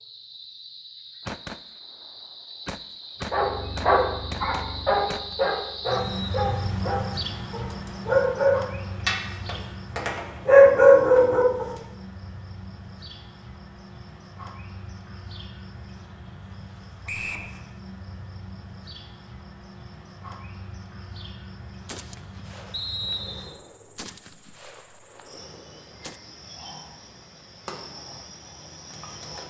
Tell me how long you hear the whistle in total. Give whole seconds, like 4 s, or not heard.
2 s.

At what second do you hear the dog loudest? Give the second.
11 s.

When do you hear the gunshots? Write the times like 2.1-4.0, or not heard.
1.2-5.3, 21.9-26.2.